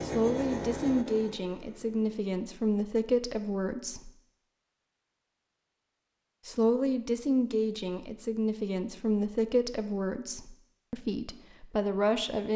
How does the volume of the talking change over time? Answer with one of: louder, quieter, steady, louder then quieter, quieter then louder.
steady.